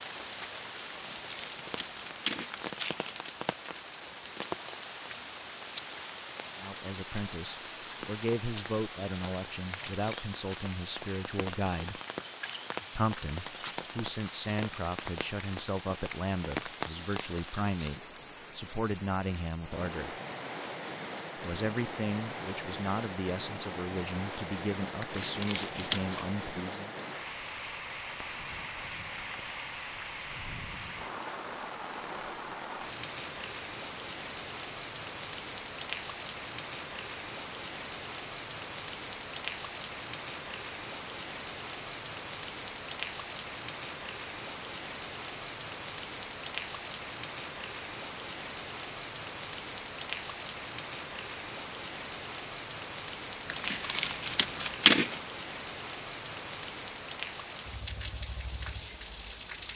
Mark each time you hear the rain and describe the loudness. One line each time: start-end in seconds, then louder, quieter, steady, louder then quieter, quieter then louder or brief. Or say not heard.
0.0-59.7 steady.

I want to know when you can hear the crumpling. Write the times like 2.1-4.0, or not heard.
0.9-3.5, 25.0-26.2, 53.5-55.2.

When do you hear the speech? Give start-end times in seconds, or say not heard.
6.5-12.0, 12.9-20.1, 21.4-26.9.